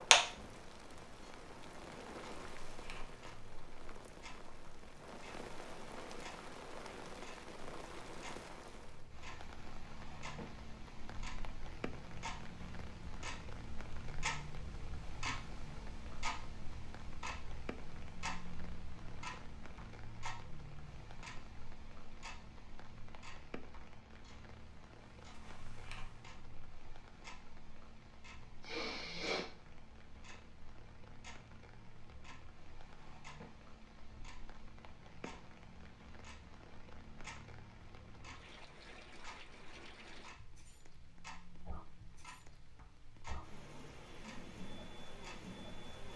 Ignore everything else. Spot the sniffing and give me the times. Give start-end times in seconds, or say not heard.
28.6-29.4.